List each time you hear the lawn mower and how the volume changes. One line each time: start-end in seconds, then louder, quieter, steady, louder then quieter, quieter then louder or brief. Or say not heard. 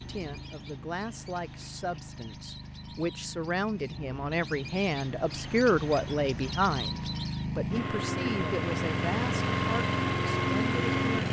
0.0-11.2 louder.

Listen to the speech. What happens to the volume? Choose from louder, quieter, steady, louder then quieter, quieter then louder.
louder then quieter.